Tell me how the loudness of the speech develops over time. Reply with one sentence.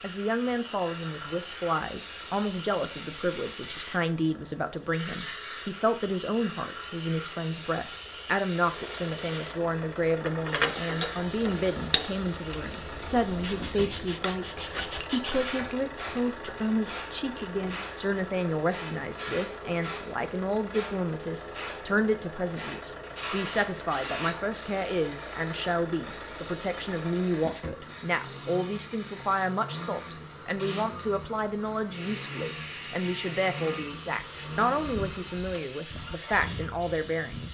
The loudness of the speech stays about the same.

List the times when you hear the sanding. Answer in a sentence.
The sanding can be heard from 13.4 to 15.7 s.